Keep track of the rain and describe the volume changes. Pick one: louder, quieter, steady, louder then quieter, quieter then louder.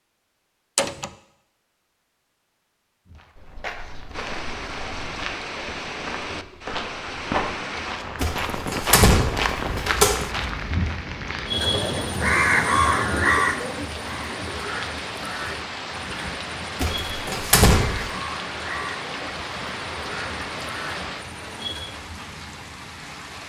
steady.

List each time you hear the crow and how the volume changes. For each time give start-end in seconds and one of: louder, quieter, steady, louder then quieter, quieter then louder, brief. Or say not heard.
11.4-22.1 quieter.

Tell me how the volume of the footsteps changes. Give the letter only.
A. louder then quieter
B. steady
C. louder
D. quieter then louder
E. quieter
C.